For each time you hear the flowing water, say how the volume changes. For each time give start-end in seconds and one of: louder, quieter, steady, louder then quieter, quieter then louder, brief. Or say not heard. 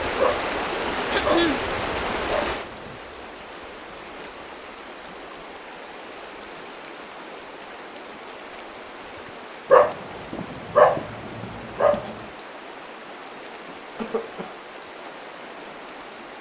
0.0-16.3 quieter.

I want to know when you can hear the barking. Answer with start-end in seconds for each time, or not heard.
0.1-3.0, 9.7-12.2.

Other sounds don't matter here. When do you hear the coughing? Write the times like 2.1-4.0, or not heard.
1.1-1.6, 13.9-14.6.